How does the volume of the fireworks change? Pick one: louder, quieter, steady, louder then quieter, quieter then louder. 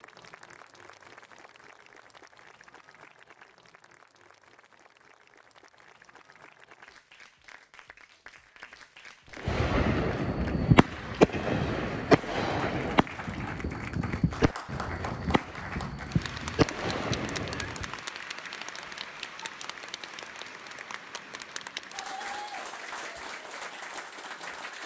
quieter then louder.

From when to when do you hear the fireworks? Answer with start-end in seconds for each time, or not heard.
9.4-17.9.